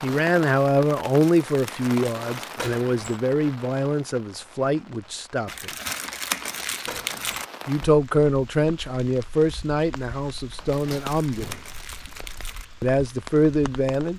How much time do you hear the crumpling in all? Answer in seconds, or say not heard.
6 s.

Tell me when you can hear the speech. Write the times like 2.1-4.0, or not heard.
0.0-5.7, 7.7-11.6, 12.8-14.1.